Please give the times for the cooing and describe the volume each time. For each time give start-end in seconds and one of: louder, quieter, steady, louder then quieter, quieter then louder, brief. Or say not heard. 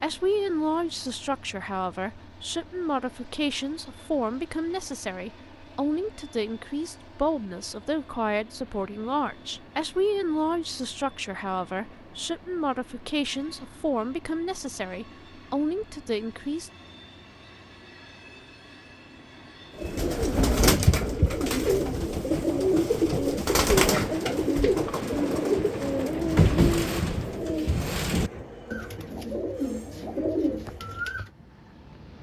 19.8-31.3 quieter.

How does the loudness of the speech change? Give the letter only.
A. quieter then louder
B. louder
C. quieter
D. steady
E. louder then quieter
D.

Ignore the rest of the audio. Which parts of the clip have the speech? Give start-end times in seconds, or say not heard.
0.0-16.7.